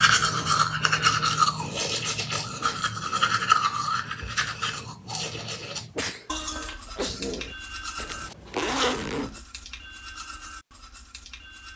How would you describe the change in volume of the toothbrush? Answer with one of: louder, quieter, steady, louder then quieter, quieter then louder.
quieter.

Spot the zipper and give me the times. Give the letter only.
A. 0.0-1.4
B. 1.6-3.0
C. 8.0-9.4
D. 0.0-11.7
C.